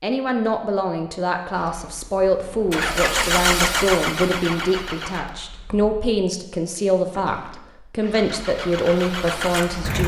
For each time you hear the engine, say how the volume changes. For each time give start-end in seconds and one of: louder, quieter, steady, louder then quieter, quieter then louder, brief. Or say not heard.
1.5-5.9 louder then quieter
8.0-10.0 brief.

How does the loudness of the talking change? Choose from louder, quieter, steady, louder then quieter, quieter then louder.
steady.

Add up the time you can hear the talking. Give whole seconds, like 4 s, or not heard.
10 s.